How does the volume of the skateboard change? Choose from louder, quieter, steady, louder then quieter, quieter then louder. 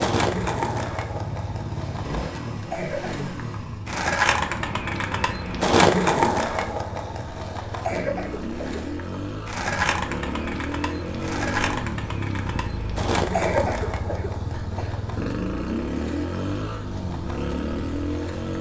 louder then quieter.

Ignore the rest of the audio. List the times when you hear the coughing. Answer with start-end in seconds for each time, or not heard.
2.5-3.5, 7.8-8.8, 13.3-15.0.